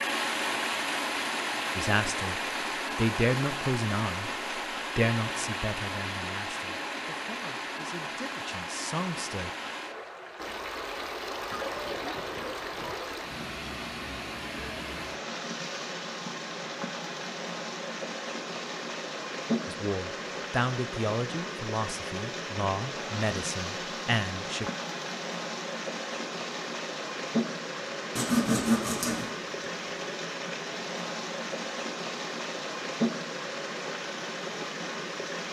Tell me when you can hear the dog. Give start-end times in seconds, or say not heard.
11.5-12.9.